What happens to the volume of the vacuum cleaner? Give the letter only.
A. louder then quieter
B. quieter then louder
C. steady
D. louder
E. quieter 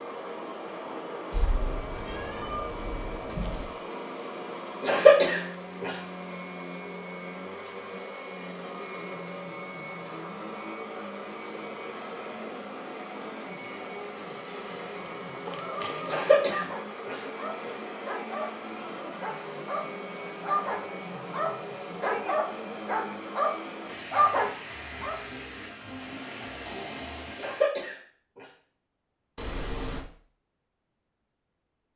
C.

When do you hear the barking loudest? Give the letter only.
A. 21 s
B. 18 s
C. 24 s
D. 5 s
C.